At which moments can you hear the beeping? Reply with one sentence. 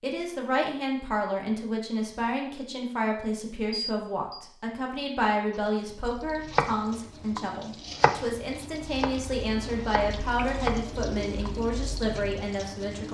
The beeping can be heard from 3.7 to 4.4 s.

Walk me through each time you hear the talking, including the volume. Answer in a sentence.
You can hear the talking from 0.0 to 13.0 s, at a steady volume.